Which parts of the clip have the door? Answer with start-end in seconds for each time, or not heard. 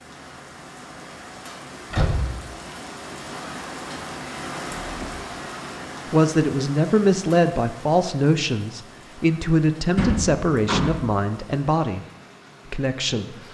1.9-2.5, 4.8-5.4, 9.9-11.1.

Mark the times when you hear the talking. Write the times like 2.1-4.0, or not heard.
6.0-12.1, 12.7-13.3.